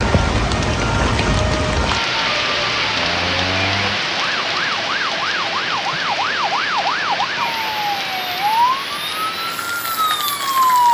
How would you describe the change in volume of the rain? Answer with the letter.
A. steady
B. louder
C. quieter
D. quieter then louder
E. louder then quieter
C.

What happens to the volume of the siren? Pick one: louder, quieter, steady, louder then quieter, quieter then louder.
louder.